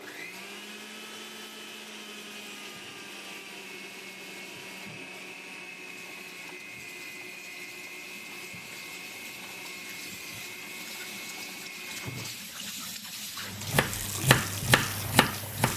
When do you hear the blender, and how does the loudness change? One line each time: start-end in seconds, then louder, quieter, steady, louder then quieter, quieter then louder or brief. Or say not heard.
0.0-12.5 steady.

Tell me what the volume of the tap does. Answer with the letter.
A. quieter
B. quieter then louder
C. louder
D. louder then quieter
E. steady
C.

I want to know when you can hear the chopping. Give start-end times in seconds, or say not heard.
13.6-15.7.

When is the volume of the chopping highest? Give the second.
14 s.